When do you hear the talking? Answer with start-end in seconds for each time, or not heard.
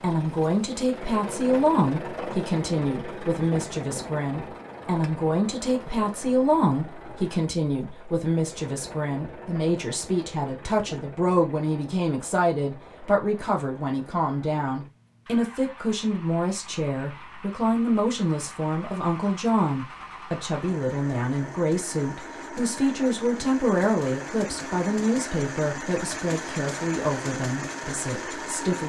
0.0-28.8.